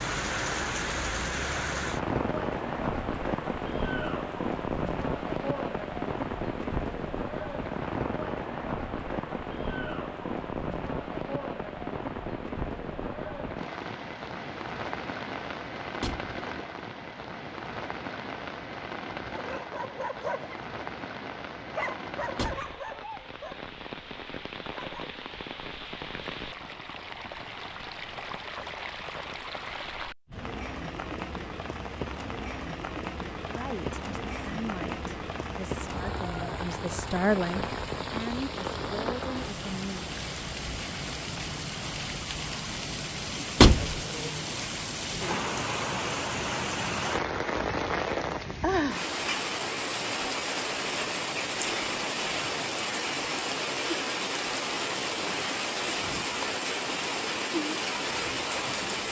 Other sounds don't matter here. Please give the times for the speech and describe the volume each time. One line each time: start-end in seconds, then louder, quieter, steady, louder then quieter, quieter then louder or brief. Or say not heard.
33.5-40.1 louder then quieter.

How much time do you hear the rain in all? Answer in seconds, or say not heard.
59 s.